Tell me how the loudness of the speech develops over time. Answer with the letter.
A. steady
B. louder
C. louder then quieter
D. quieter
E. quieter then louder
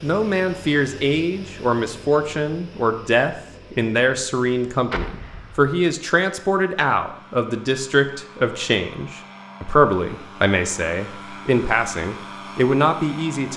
A.